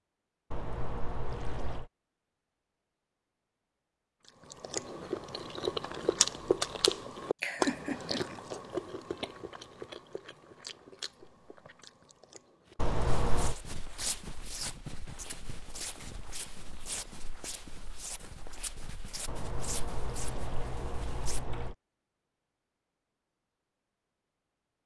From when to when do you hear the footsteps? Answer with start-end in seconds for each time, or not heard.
13.1-21.4.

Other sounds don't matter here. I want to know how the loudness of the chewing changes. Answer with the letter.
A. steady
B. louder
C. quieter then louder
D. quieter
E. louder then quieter
D.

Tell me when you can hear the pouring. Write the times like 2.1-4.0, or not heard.
0.5-1.9, 12.8-13.6, 19.2-21.8.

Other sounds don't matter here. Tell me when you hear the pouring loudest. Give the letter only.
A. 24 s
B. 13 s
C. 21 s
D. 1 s
B.